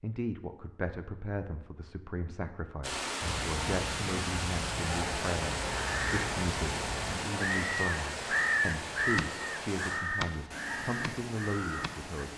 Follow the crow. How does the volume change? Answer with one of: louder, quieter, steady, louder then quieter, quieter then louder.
louder then quieter.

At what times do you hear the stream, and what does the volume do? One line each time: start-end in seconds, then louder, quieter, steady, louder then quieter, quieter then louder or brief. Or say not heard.
2.8-12.3 quieter.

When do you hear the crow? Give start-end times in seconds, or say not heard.
3.2-12.3.